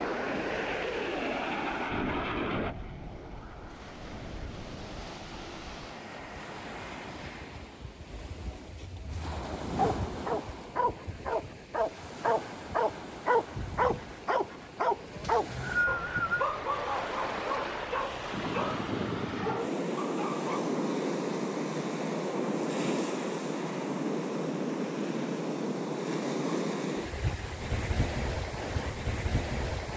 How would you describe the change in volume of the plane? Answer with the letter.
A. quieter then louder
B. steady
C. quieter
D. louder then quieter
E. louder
C.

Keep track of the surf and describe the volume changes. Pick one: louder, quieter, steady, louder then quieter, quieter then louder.
louder.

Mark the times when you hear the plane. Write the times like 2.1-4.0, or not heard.
0.0-7.7.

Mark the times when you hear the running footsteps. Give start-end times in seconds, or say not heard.
not heard.